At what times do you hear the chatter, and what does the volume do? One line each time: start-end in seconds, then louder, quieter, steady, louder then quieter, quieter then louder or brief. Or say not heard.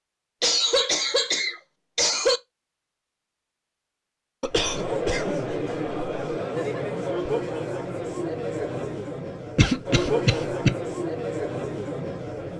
4.5-12.5 steady.